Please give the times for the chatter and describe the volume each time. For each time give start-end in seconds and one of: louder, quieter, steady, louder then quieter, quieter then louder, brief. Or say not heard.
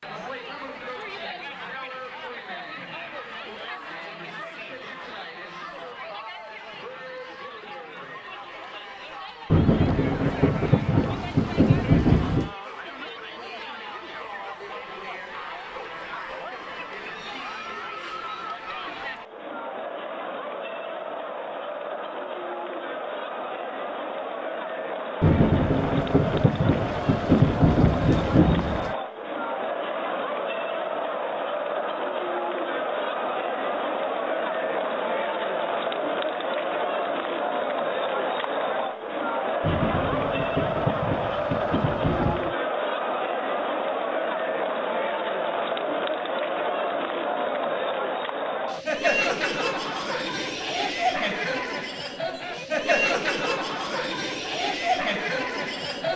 0.0-56.1 louder.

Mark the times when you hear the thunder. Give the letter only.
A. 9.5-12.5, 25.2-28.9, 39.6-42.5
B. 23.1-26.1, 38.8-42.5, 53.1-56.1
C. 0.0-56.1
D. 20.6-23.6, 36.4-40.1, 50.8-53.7
A.